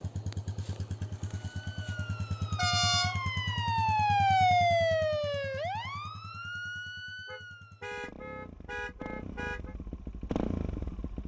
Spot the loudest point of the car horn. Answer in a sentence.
The volume of the car horn peaks at 3 seconds.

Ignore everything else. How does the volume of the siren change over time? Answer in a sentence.
The volume of the siren goes up, then down.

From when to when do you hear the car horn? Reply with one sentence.
You can hear the car horn from 2.5 to 3.2 s and from 7.2 to 9.8 s.